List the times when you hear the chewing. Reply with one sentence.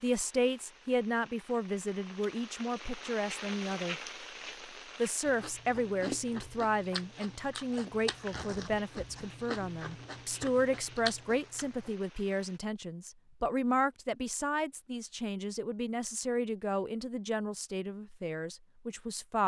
The chewing can be heard from 5.2 to 11.9 s.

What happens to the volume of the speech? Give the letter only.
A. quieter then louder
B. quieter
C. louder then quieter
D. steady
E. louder
D.